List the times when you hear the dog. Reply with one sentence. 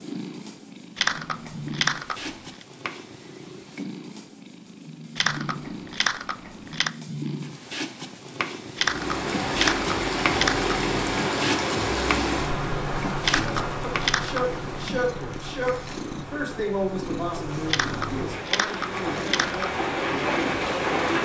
The dog can't be heard in this clip.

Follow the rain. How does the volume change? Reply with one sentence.
The volume of the rain goes down, then up.